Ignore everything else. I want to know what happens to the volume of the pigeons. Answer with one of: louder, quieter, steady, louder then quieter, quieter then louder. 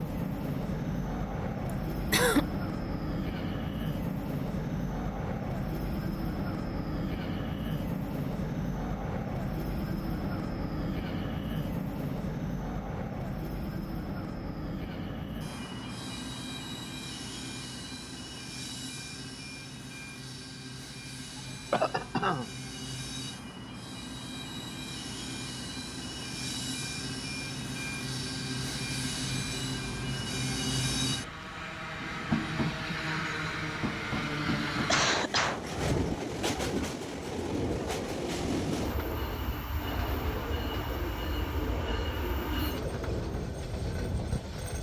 steady.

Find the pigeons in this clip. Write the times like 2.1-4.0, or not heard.
37.3-43.5.